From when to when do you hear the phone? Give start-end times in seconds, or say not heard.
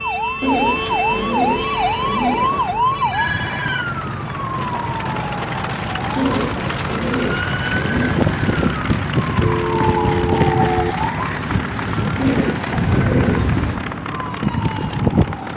1.6-3.9, 9.4-10.9.